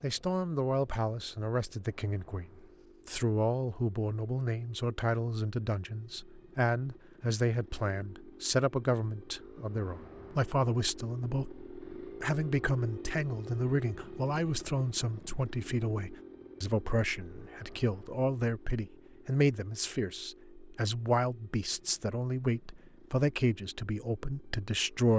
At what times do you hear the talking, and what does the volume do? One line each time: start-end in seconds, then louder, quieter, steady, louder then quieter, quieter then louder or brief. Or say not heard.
0.0-25.1 steady.